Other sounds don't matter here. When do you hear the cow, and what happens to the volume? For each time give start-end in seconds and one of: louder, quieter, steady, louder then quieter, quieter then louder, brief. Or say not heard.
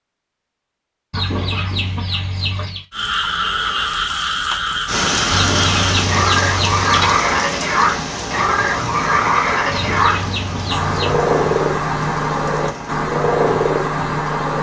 not heard.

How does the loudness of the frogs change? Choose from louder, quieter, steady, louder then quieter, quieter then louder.
steady.